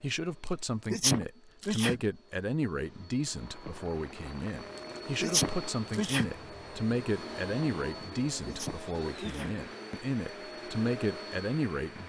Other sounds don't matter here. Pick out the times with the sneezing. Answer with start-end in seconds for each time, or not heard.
0.9-2.0, 5.2-6.3, 8.4-9.6.